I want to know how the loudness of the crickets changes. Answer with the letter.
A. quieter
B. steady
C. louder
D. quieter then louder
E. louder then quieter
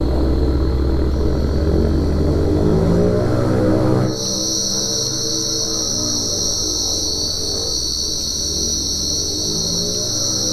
C.